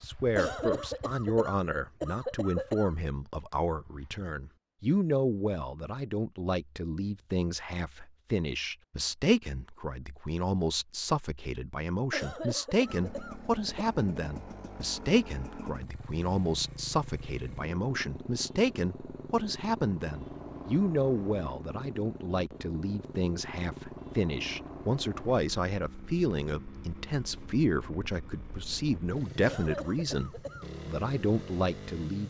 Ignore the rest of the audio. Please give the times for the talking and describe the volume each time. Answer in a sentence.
You can hear the talking from 0.0 to 32.2 s, at a steady volume.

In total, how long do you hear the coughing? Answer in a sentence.
You can hear the coughing for 6 seconds altogether.